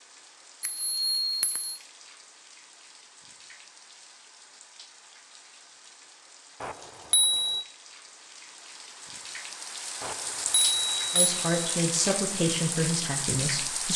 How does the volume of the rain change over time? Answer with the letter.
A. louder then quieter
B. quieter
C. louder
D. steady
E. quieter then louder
C.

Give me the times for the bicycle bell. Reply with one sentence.
You can hear the bicycle bell from 0.6 to 1.8 s, from 6.6 to 7.7 s and from 10.0 to 11.6 s.